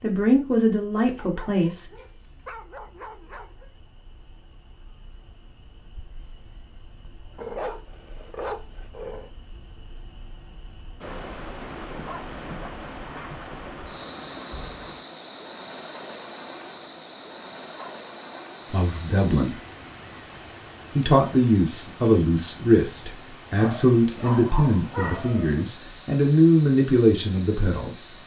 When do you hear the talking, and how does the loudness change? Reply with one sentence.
You can hear the talking briefly from 0.0 to 1.9 s; briefly from 18.7 to 19.6 s; and from 20.9 to 28.1 s, at a steady volume.